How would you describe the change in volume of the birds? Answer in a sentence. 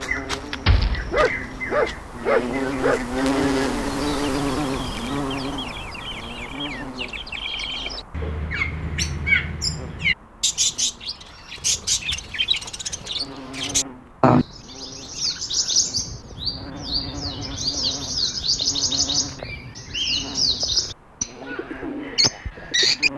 The loudness of the birds goes up.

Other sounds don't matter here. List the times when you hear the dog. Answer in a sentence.
The dog can be heard from 0.7 to 3.0 s.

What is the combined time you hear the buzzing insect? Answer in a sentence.
You can hear the buzzing insect for 23 seconds altogether.